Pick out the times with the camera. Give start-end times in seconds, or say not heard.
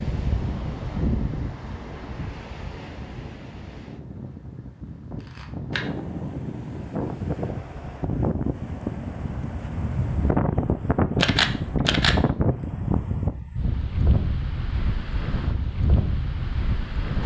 5.2-5.8, 11.2-12.2.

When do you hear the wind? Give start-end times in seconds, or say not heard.
0.0-17.2.